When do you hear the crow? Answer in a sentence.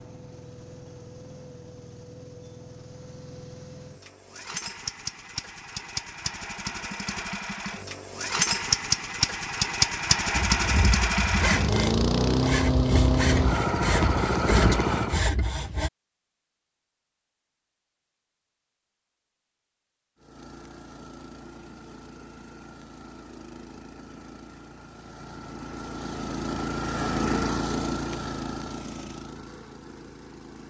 The crow can't be heard in this clip.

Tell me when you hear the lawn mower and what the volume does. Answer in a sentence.
The lawn mower can be heard from 0.0 to 15.2 s, getting louder; and from 20.2 to 30.6 s, getting louder then quieter.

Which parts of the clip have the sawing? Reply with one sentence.
The sawing can be heard from 10.3 to 15.9 s.